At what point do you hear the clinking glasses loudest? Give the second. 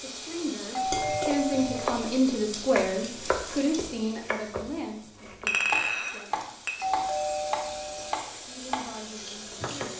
6 s.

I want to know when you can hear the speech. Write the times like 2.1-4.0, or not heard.
0.0-6.5, 8.4-9.9.